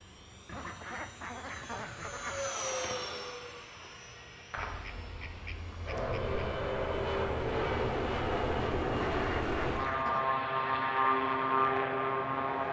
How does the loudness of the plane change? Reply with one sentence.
The loudness of the plane goes up.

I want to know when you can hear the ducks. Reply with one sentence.
You can hear the ducks from 0.5 to 2.5 s, from 4.5 to 6.4 s and from 9.1 to 10.4 s.